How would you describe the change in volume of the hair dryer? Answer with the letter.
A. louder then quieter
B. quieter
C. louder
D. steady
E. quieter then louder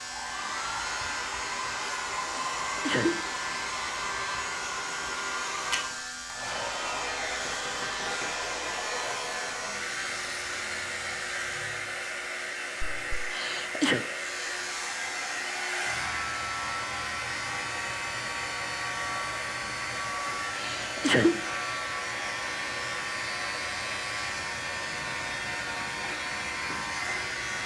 D.